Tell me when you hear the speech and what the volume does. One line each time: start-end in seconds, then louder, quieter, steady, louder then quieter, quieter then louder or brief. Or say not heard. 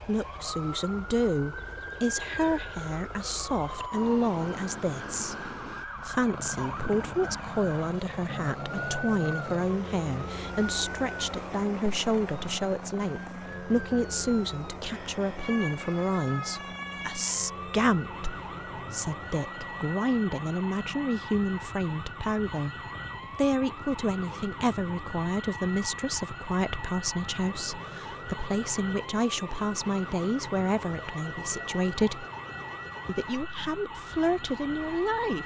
0.1-32.2 steady
33.0-35.4 brief.